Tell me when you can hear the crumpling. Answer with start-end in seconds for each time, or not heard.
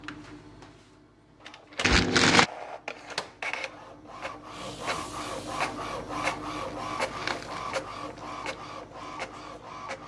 1.8-2.5, 6.5-8.4.